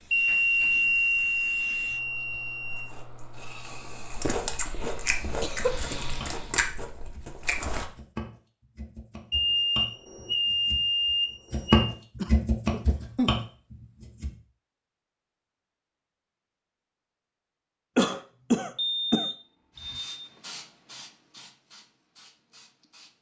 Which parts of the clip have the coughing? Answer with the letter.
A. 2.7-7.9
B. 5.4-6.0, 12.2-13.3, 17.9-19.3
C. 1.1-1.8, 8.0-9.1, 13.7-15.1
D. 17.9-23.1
B.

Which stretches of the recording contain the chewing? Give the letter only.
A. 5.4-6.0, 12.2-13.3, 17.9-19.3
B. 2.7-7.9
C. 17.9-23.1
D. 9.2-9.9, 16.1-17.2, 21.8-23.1
B.